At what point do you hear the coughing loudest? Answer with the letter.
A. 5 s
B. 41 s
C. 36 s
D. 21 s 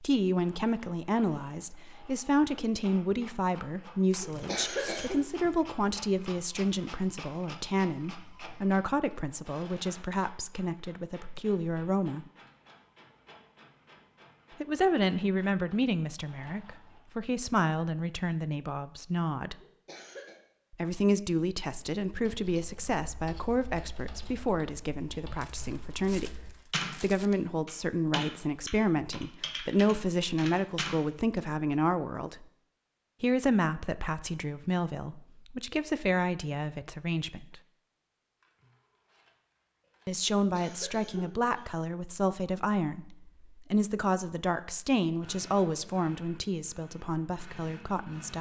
A.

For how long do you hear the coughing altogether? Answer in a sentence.
You can hear the coughing for 3 seconds altogether.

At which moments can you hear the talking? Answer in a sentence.
You can hear the talking from 0.0 to 12.2 s, from 14.6 to 19.6 s, from 20.7 to 32.5 s, from 33.2 to 37.6 s and from 40.0 to 48.3 s.